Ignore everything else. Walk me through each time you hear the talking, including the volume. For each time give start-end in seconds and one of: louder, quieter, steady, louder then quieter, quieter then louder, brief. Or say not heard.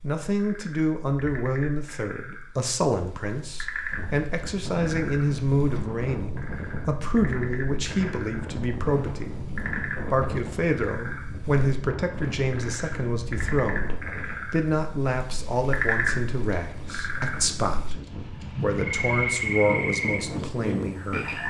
0.0-21.4 steady.